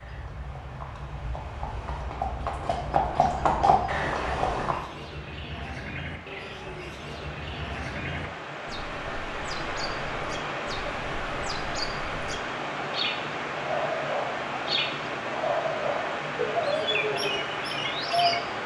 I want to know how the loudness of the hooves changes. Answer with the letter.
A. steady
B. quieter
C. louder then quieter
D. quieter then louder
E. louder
E.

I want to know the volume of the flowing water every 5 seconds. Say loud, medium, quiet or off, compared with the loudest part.
quiet, medium, loud, loud.